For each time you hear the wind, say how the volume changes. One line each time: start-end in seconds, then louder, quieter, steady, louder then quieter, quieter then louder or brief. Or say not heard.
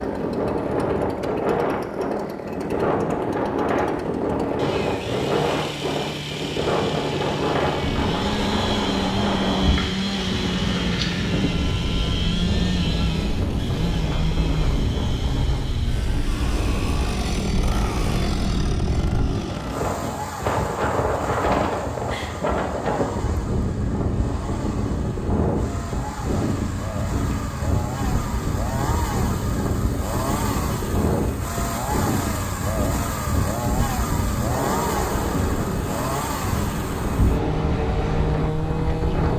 0.0-39.3 steady.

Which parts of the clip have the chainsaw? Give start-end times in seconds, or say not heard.
0.0-39.3.